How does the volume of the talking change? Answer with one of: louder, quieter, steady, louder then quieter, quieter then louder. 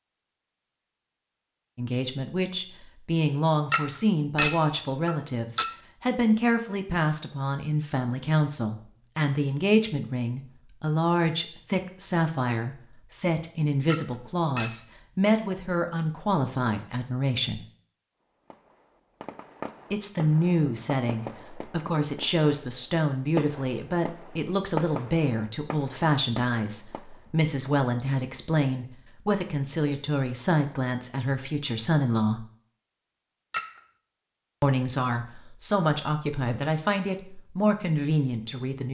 steady.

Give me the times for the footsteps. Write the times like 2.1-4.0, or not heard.
not heard.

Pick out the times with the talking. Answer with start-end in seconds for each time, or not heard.
1.8-17.6, 19.9-32.4, 34.6-38.8.